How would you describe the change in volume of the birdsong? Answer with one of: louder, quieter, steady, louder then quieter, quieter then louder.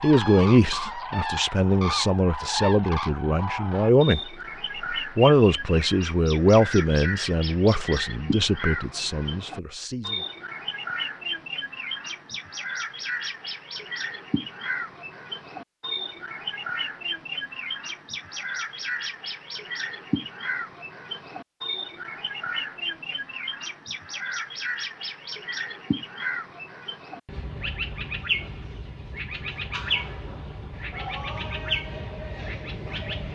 steady.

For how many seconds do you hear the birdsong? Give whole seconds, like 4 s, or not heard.
33 s.